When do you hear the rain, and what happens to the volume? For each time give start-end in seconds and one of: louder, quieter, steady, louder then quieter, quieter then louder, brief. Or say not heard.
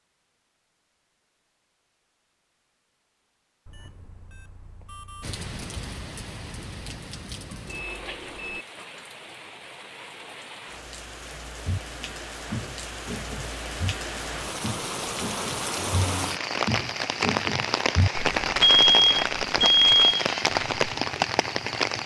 5.2-22.0 louder.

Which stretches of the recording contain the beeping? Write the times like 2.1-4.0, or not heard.
3.6-5.4, 7.7-8.7, 18.6-20.1.